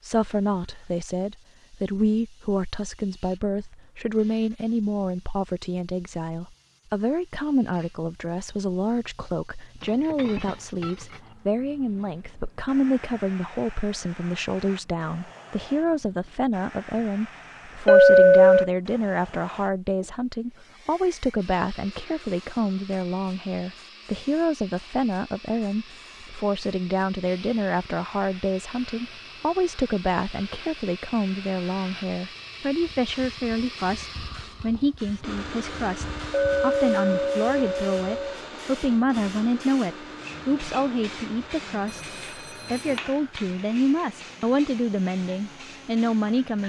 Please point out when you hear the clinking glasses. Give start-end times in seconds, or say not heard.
9.8-11.3, 17.9-18.7, 36.3-38.4.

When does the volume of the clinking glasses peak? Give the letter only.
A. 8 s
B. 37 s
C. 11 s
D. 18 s
D.